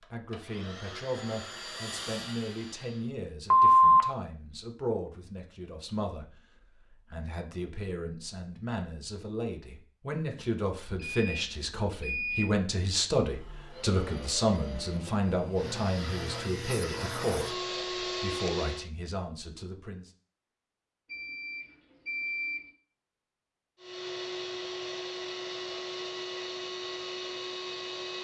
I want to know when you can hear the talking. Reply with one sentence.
You can hear the talking from 0.0 to 20.1 s.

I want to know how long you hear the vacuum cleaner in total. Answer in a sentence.
You can hear the vacuum cleaner for 13 seconds altogether.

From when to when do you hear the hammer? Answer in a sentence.
The hammer can't be heard in this clip.